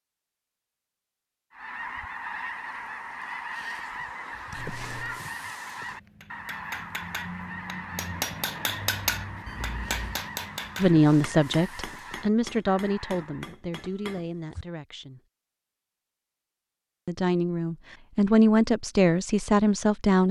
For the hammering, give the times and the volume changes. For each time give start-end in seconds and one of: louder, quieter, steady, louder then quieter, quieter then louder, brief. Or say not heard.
5.8-14.3 louder then quieter.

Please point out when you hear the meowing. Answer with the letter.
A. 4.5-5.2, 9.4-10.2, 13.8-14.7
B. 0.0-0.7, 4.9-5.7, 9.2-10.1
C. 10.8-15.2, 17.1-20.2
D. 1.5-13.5
A.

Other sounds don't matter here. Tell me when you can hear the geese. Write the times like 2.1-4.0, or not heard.
1.5-13.5.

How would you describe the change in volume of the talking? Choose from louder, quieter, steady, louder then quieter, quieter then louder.
quieter then louder.